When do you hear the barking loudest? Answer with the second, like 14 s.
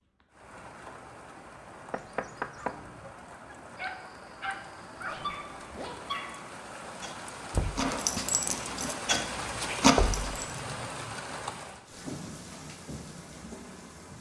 10 s.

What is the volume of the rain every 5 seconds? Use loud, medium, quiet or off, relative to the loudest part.
medium, loud, loud.